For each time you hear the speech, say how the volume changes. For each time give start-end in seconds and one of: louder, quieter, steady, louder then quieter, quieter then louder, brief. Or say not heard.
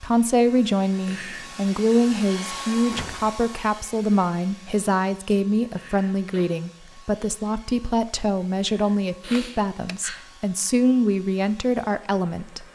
0.0-12.6 steady.